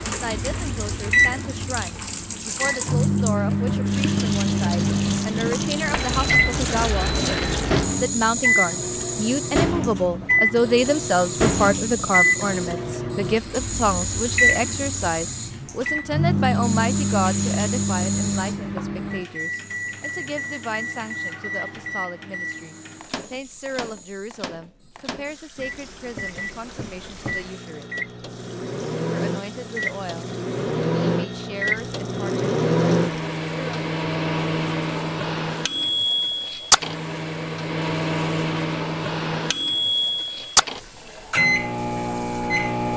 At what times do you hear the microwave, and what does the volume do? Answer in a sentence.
The microwave can be heard from 0.0 to 42.9 s, getting quieter then louder.